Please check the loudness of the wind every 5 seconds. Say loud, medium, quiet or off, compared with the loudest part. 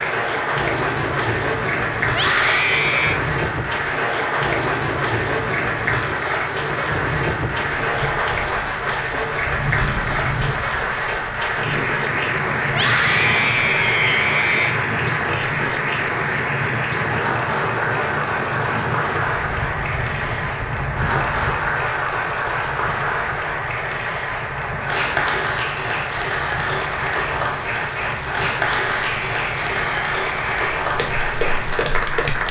loud, loud, loud, loud, medium, medium, medium.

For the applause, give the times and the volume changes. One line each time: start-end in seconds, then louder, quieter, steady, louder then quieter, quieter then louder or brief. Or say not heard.
0.0-32.4 steady.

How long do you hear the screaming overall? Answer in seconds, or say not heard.
5 s.